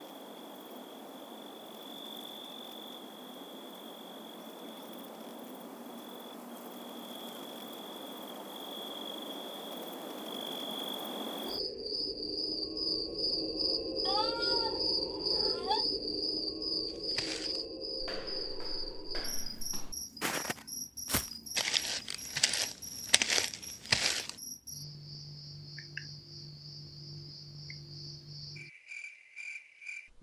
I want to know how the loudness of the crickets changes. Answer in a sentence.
The loudness of the crickets goes up, then down.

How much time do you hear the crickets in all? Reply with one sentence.
You can hear the crickets for 30 seconds altogether.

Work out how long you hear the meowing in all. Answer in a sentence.
The meowing can be heard for 2 seconds in total.